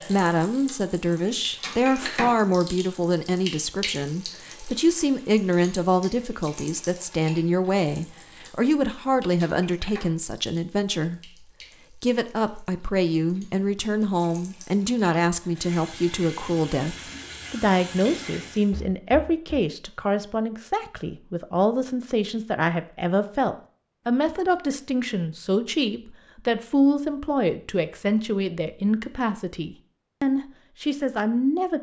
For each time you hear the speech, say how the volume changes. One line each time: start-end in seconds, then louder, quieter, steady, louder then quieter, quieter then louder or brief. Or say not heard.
0.1-31.7 steady.